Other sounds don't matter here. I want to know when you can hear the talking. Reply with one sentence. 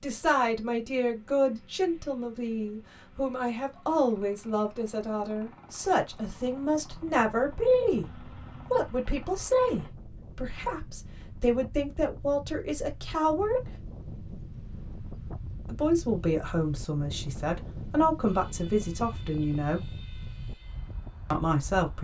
You can hear the talking from 0.0 to 13.7 s, from 15.7 to 19.9 s and from 21.3 to 21.9 s.